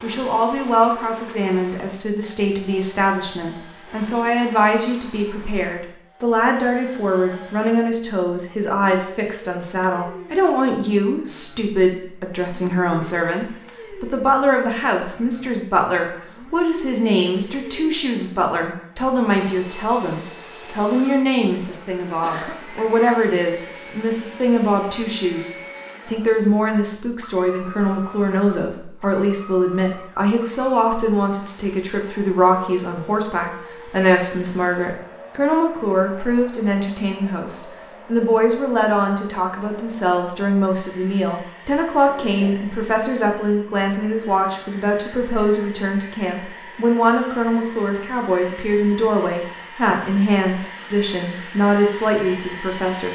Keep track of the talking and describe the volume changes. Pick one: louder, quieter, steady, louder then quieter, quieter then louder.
steady.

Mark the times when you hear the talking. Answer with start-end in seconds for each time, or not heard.
0.0-53.1.